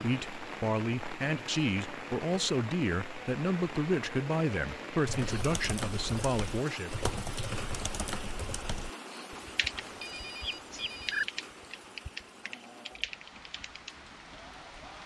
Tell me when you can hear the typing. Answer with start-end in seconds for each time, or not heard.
5.0-13.9.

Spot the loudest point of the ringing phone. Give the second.
11 s.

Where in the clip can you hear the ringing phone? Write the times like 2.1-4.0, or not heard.
9.8-11.2.